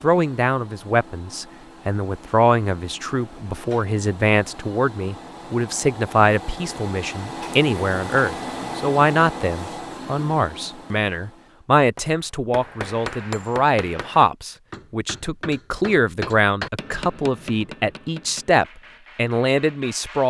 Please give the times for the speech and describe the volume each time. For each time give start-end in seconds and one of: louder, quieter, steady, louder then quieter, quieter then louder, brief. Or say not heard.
0.0-20.2 steady.